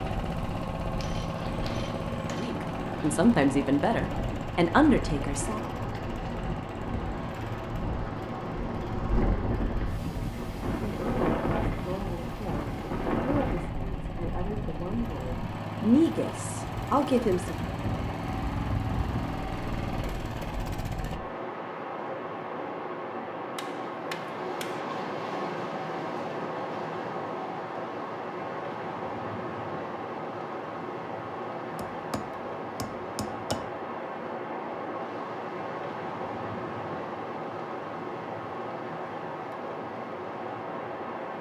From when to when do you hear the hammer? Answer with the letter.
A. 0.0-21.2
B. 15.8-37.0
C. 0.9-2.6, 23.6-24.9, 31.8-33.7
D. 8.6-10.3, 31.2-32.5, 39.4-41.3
C.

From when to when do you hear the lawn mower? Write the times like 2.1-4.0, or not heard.
0.0-21.2.